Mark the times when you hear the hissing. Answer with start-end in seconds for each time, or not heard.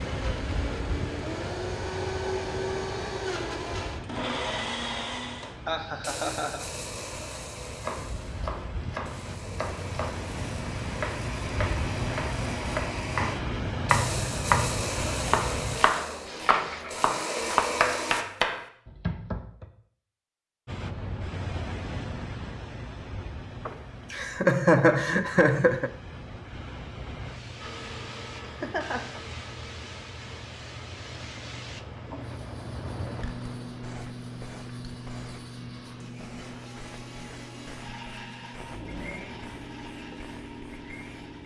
0.0-17.6, 20.6-41.4.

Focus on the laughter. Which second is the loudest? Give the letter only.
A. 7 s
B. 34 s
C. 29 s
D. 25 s
D.